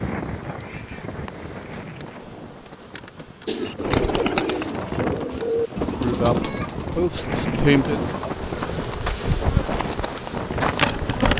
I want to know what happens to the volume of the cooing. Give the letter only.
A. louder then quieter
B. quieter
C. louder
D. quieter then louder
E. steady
B.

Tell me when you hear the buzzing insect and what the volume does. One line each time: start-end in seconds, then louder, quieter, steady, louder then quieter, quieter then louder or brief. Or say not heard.
0.0-11.3 louder.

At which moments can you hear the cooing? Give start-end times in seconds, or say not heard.
3.5-9.1.